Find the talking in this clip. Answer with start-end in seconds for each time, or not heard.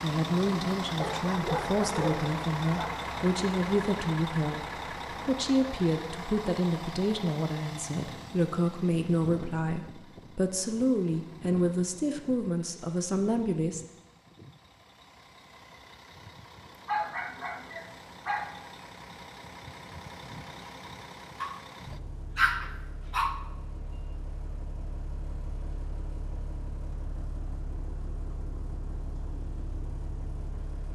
0.0-13.8.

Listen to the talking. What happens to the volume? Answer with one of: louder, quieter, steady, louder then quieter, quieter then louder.
steady.